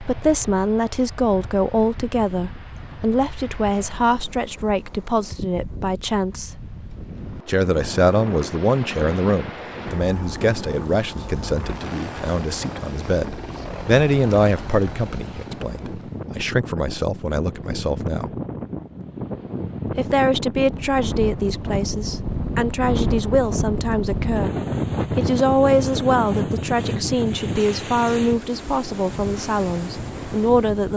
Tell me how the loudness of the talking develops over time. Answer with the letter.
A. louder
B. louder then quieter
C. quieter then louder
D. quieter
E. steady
E.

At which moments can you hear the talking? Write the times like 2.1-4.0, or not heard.
0.0-6.5, 7.5-18.3, 19.9-30.9.